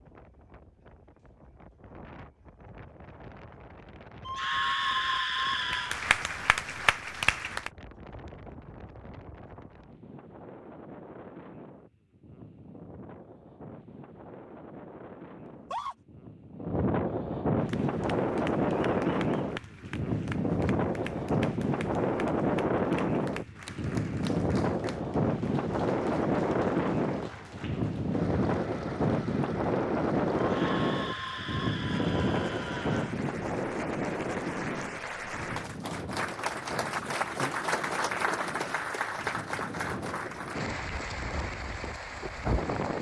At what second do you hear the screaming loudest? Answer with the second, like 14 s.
5 s.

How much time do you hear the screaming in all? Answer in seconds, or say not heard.
5 s.